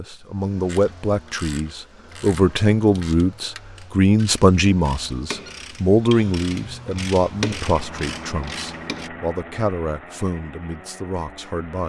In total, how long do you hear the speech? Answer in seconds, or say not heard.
12 s.